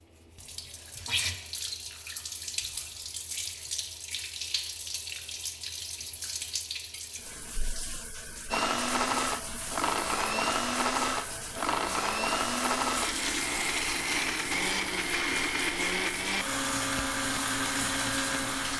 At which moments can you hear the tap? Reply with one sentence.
The tap can be heard from 0.0 to 18.7 s.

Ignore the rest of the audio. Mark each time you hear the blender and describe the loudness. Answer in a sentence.
You can hear the blender from 8.5 to 18.7 s, at a steady volume.